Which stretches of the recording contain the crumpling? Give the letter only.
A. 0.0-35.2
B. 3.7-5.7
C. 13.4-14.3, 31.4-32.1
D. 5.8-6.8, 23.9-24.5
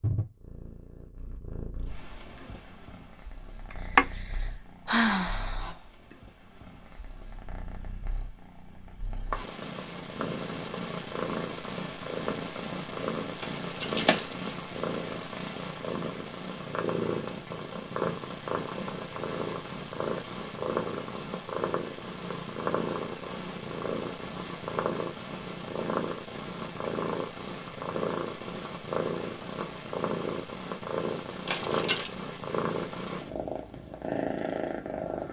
C.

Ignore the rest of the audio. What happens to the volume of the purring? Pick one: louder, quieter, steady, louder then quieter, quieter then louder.
louder.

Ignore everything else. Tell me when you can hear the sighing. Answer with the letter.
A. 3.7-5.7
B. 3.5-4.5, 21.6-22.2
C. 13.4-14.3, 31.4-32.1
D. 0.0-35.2
A.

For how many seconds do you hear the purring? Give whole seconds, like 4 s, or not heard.
35 s.